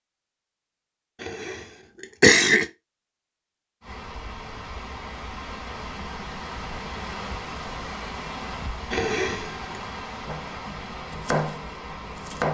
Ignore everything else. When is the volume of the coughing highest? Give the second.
2 s.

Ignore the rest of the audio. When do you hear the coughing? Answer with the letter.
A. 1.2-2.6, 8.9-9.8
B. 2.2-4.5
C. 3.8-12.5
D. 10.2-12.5
A.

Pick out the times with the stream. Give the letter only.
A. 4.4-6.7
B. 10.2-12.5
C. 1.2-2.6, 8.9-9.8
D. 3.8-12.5
D.